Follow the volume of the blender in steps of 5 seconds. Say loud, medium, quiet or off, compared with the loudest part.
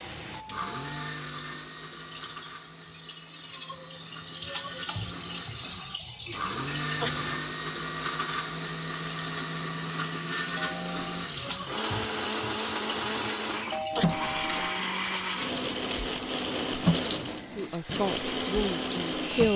medium, loud, loud, loud.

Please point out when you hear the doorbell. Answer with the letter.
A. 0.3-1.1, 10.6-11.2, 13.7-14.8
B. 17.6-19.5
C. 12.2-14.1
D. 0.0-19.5
A.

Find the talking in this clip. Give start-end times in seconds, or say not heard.
17.6-19.5.